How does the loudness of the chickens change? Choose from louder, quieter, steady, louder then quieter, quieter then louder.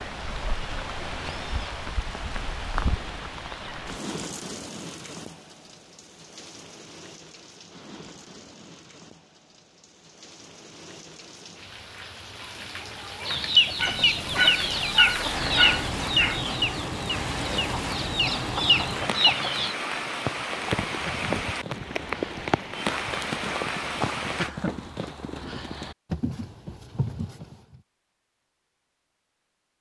quieter then louder.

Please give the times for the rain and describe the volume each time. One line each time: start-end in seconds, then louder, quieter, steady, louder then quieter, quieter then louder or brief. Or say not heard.
0.0-24.5 quieter then louder.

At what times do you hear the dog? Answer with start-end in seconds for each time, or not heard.
13.8-16.4.